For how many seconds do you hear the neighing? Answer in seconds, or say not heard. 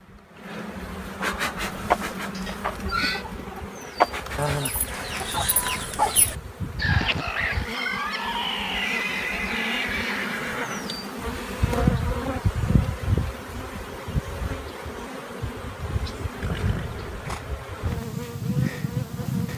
5 s.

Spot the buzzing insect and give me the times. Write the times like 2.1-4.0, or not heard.
0.0-19.5.